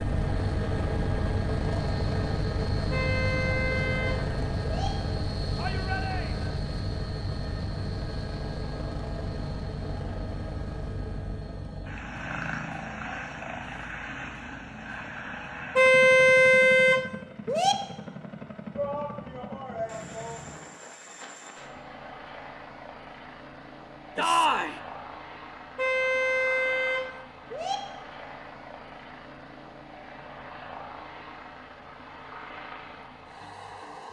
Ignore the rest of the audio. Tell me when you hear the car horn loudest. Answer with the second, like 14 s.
16 s.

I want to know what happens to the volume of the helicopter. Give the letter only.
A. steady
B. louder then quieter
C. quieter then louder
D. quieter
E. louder
D.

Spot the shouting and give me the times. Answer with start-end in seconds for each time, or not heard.
5.5-6.5, 18.8-20.4, 24.1-24.8.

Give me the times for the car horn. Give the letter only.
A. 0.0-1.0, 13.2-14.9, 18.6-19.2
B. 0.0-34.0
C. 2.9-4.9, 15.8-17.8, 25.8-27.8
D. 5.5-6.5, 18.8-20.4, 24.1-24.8
C.